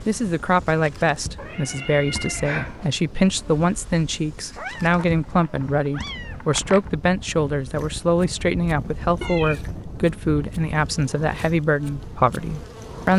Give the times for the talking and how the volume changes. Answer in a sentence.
You can hear the talking from 0.1 to 13.1 s, at a steady volume.